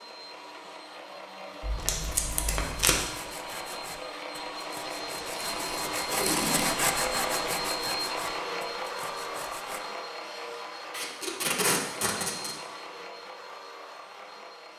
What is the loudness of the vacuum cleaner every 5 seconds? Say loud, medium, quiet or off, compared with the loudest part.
medium, loud, medium.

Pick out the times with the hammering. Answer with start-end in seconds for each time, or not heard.
not heard.